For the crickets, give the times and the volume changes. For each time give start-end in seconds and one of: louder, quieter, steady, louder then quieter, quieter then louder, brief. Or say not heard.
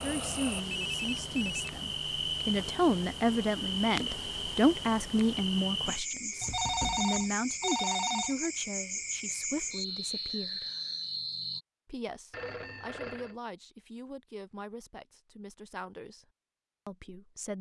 0.0-11.6 steady.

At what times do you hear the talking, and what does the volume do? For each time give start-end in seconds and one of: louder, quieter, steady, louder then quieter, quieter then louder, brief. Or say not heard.
0.0-10.7 louder then quieter
11.8-16.2 steady
16.9-17.5 brief.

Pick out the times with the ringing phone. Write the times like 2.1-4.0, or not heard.
0.7-1.6, 6.4-8.4, 12.3-13.3.